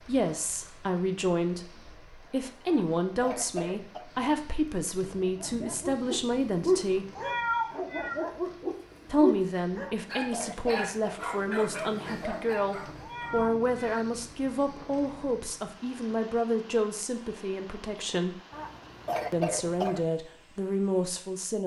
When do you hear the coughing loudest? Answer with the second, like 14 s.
19 s.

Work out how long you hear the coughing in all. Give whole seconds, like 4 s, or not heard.
4 s.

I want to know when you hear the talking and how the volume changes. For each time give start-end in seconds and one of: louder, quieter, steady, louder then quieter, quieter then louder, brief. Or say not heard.
0.1-7.0 steady
9.1-18.4 steady
19.3-21.6 brief.